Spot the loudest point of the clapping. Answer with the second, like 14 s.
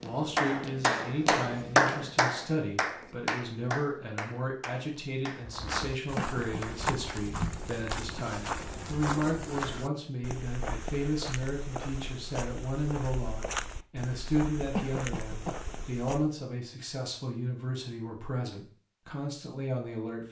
2 s.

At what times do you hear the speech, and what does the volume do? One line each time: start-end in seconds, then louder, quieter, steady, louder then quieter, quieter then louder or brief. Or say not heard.
0.0-20.2 steady.